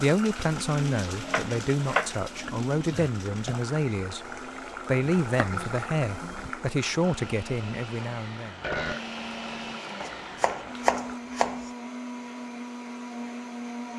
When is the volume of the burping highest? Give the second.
9 s.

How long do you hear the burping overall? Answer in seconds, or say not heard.
2 s.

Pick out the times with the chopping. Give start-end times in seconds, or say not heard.
1.2-2.6, 5.2-6.5, 10.0-11.7.